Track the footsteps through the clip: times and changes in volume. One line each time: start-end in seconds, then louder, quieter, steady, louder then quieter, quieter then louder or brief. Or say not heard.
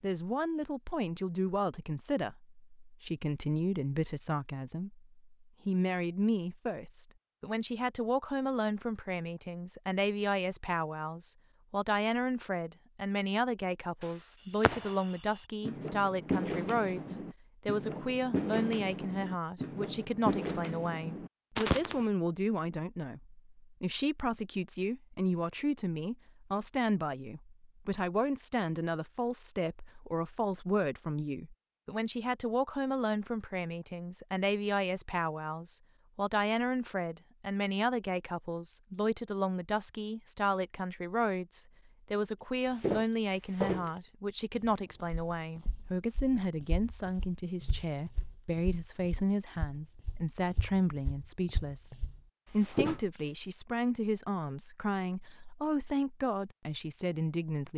42.8-53.0 quieter then louder.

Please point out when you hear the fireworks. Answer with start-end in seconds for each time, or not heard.
14.0-22.1.